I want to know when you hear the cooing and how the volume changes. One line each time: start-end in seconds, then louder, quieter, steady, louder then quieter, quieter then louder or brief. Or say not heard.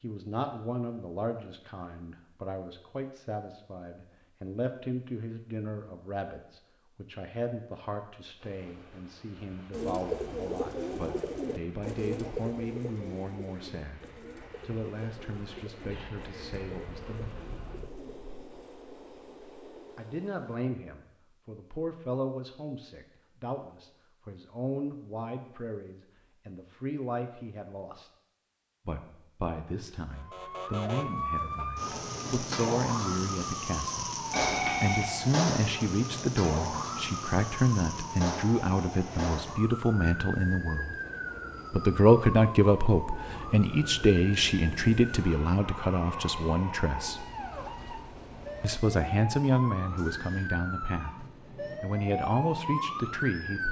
9.7-18.2 quieter.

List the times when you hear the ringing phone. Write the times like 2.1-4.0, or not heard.
34.3-35.1.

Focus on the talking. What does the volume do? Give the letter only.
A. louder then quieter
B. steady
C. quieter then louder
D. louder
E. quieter
D.